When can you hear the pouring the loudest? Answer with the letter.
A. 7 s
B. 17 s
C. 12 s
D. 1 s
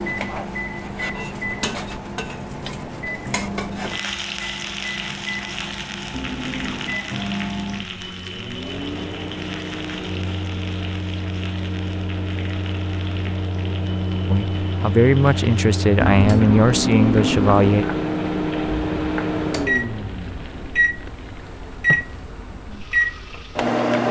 B.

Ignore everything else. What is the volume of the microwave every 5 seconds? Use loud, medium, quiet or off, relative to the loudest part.
medium, medium, medium, loud, loud.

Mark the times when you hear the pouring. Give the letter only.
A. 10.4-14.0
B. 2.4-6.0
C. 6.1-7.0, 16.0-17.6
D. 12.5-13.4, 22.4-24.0
C.